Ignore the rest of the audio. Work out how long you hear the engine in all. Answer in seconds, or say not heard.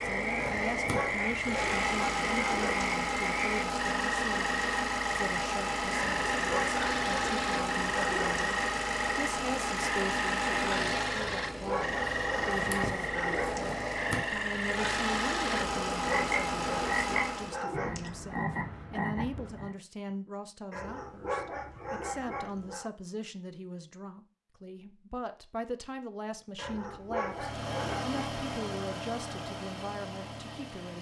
21 s.